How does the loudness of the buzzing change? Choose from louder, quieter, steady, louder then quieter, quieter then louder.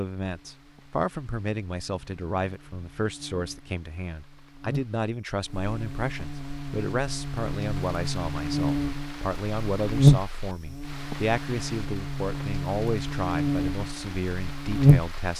louder then quieter.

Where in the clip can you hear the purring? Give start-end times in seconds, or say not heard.
not heard.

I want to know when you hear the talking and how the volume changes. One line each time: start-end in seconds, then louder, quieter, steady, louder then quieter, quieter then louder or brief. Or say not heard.
0.0-15.3 steady.